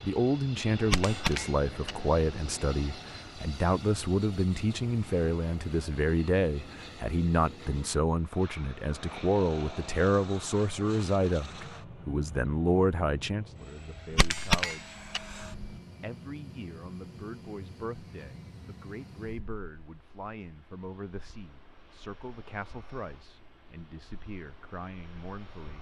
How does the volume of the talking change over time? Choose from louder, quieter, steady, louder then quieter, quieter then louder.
quieter.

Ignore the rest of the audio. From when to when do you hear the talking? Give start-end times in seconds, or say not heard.
0.0-14.9, 16.0-25.7.